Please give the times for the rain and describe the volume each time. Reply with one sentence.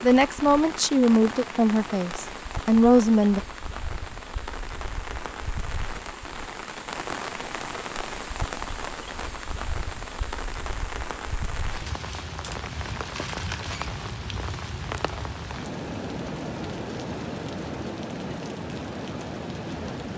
You can hear the rain from 0.0 to 20.1 s, at a steady volume.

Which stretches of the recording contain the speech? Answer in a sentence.
You can hear the speech from 0.0 to 3.4 s.